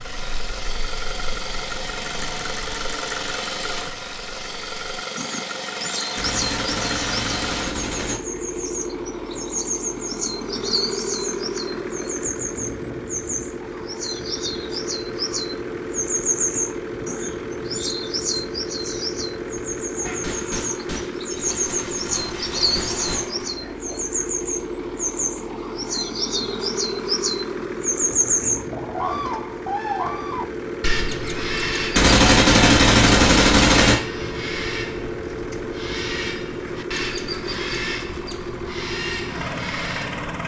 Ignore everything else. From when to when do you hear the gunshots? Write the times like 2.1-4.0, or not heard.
6.2-8.2, 20.1-23.4, 31.9-34.0.